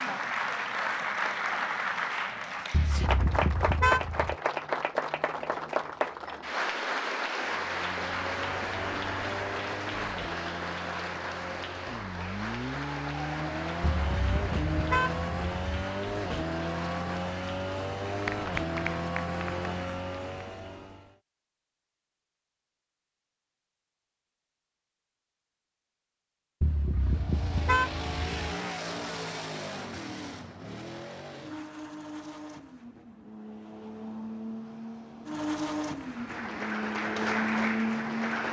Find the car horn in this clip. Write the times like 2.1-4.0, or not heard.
2.7-4.3, 13.8-15.6, 26.6-28.3.